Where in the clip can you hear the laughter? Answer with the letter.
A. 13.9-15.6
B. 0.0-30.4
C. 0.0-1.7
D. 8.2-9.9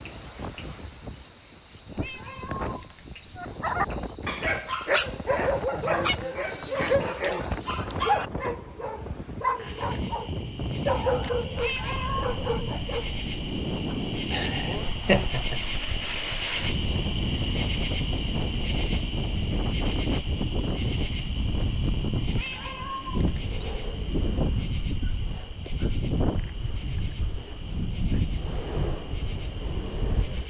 A.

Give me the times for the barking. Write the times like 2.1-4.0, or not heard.
3.4-13.1.